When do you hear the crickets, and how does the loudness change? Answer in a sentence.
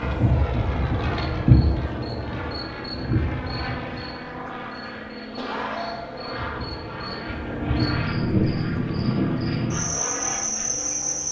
You can hear the crickets from 0.0 to 11.2 s, getting quieter then louder.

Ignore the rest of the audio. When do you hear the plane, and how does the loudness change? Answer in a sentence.
The plane can be heard from 0.0 to 11.2 s, at a steady volume.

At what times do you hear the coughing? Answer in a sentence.
You can hear the coughing from 5.3 to 6.3 s.